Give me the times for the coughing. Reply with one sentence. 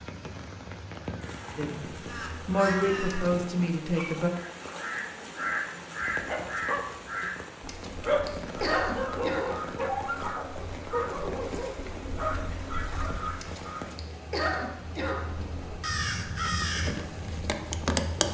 The coughing can be heard from 3.1 to 3.7 s, from 7.7 to 9.6 s and from 13.4 to 15.3 s.